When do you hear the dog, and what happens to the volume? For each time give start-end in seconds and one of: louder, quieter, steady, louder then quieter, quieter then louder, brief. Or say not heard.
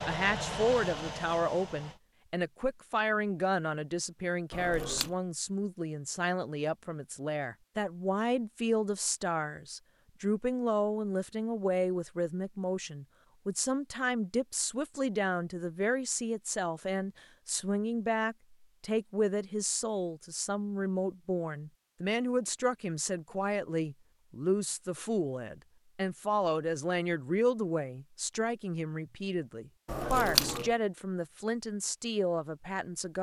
not heard.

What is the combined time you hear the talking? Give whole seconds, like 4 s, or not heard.
33 s.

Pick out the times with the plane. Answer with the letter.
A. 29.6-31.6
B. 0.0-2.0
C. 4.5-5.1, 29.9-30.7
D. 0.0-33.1
B.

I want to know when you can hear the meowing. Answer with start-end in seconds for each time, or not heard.
4.5-5.1, 29.9-30.7.